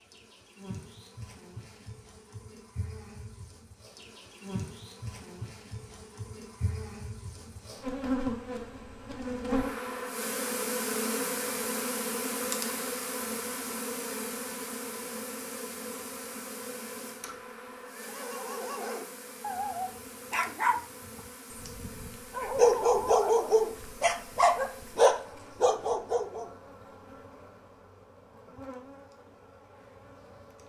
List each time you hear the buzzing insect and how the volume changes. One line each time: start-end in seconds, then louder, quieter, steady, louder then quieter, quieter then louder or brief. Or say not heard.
0.0-30.6 louder then quieter.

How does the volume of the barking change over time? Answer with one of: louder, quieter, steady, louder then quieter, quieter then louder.
louder.